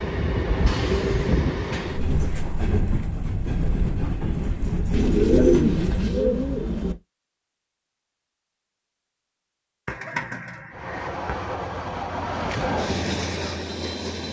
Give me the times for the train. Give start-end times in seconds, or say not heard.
0.0-6.2, 10.7-14.2.